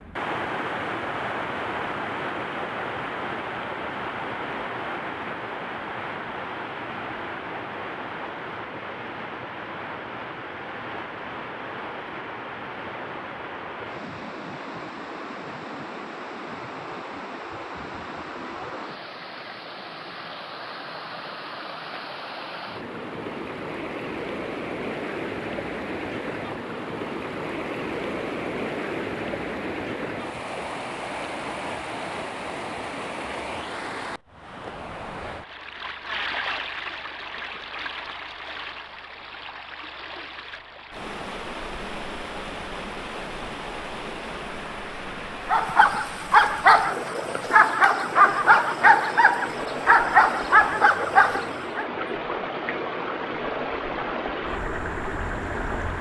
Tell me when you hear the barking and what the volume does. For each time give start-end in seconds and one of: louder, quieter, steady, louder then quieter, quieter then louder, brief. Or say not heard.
45.5-51.9 steady.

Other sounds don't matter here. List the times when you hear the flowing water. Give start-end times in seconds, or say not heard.
0.0-55.9.